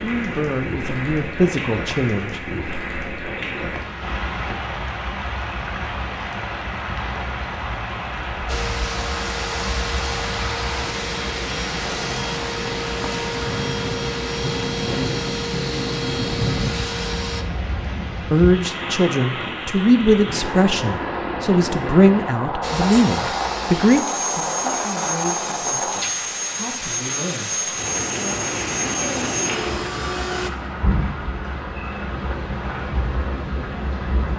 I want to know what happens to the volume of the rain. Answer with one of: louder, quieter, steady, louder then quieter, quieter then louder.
steady.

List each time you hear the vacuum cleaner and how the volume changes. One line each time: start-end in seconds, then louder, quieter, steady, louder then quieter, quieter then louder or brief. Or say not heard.
8.4-17.4 steady
22.6-30.5 steady.